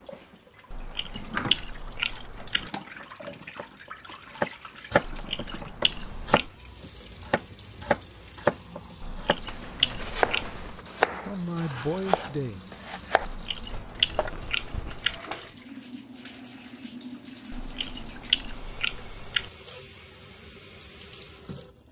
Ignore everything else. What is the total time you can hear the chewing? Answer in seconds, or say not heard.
9 s.